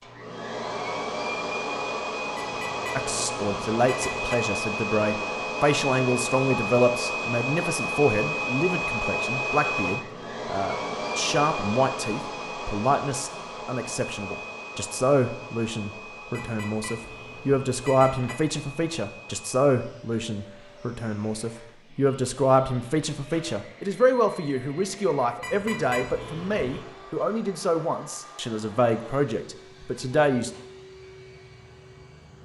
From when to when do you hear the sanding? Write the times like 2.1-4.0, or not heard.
not heard.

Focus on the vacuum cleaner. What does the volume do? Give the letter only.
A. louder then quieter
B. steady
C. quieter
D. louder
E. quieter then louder
C.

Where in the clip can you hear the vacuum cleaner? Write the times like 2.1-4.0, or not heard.
0.0-32.3.